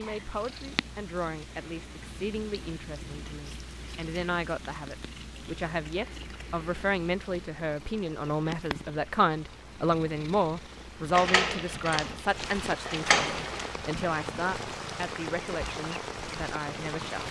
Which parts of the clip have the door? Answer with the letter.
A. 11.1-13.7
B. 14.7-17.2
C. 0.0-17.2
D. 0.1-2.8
A.